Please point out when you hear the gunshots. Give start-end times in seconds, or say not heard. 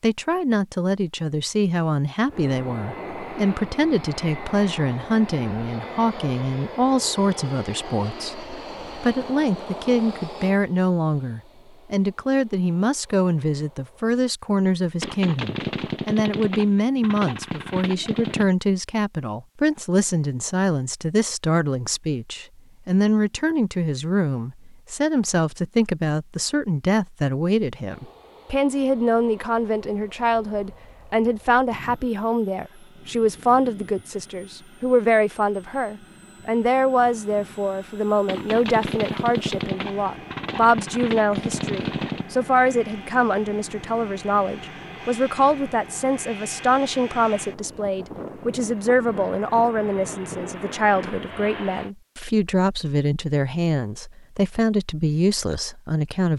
15.0-18.4, 38.2-42.2.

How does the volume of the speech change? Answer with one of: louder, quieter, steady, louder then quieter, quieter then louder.
steady.